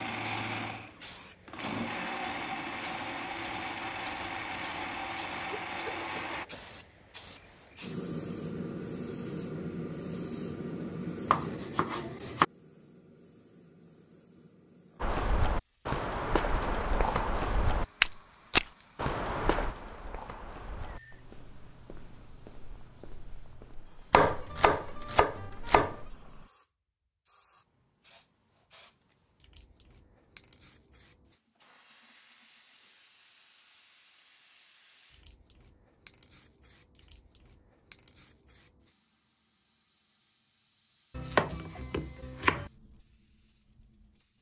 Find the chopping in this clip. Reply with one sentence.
You can hear the chopping from 11.2 to 12.4 s, from 24.1 to 26.0 s and from 41.1 to 42.7 s.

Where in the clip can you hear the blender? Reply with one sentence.
You can hear the blender from 0.0 to 6.5 s.